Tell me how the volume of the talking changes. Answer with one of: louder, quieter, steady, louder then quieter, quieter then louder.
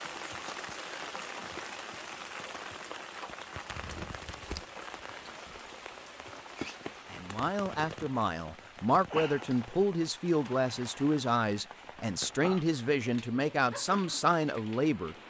steady.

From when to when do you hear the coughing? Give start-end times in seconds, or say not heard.
not heard.